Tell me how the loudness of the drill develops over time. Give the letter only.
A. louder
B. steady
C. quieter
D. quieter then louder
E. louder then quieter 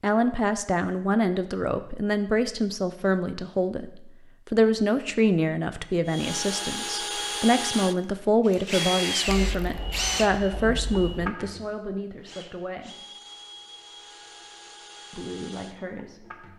C.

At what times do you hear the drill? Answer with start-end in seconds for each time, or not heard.
6.0-16.5.